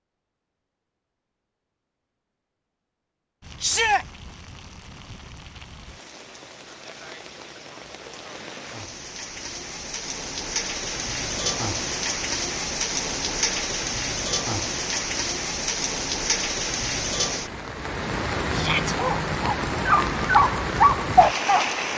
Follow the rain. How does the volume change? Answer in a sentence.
The loudness of the rain goes up.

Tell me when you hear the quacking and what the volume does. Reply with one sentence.
The quacking can't be heard in this clip.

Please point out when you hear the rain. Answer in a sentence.
You can hear the rain from 3.4 to 21.9 s.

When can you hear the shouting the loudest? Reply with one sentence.
The loudest moment of the shouting is at 4 seconds.